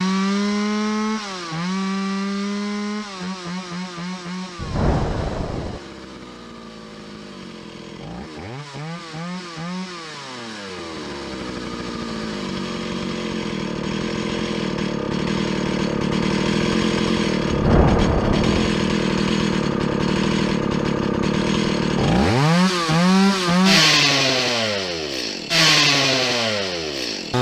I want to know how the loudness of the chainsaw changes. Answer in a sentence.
The volume of the chainsaw goes down, then up.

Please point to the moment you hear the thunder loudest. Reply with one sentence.
The loudest moment of the thunder is at 18 seconds.